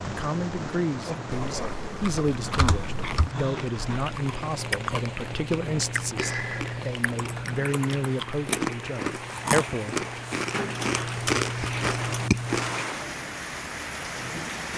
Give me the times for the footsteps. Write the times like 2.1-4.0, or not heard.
not heard.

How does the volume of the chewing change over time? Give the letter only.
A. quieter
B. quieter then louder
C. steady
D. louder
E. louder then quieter
D.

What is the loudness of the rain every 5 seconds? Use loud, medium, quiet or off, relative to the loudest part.
loud, medium, loud.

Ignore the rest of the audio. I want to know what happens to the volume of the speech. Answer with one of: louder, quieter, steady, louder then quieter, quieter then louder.
steady.